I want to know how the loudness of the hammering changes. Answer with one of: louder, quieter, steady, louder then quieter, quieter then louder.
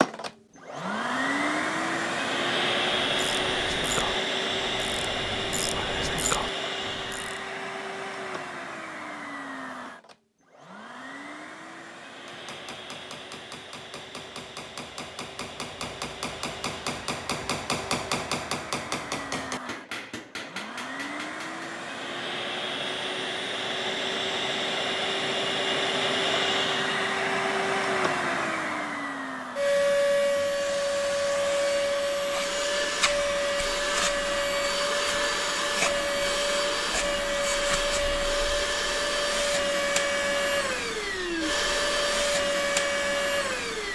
louder then quieter.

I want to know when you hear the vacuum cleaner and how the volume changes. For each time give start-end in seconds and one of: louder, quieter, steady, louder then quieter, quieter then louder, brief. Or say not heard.
0.0-43.8 quieter then louder.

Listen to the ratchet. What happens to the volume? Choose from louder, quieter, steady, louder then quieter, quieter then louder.
quieter then louder.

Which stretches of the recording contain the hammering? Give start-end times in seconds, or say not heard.
12.2-21.6.